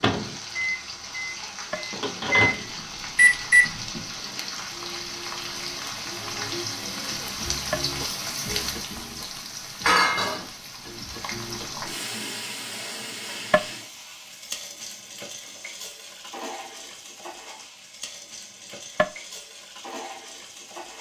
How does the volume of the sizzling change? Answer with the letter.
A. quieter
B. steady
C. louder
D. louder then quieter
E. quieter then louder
D.